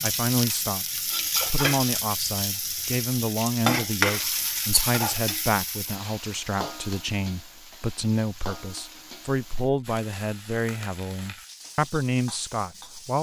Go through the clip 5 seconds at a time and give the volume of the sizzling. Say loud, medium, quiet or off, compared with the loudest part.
loud, medium, quiet.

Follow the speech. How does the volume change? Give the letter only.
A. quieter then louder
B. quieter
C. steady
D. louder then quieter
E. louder
C.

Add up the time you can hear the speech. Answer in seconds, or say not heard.
13 s.